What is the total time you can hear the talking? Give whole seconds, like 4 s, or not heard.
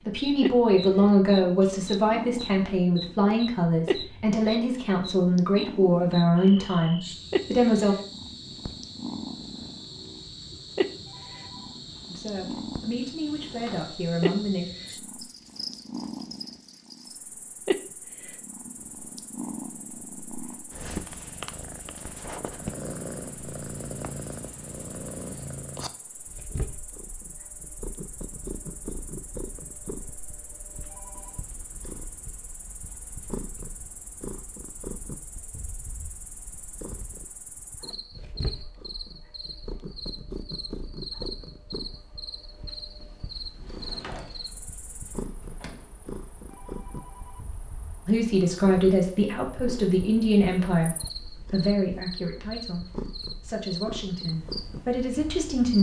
18 s.